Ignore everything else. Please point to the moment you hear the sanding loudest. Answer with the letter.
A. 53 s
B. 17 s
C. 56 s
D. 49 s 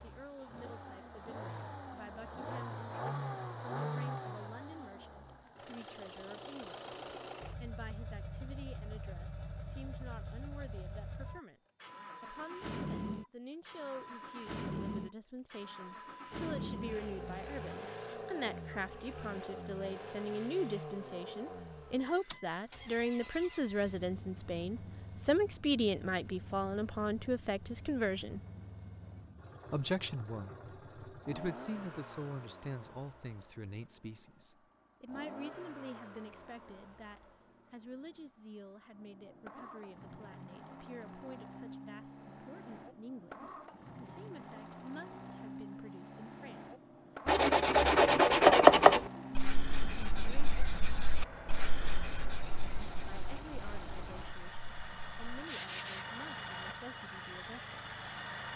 D.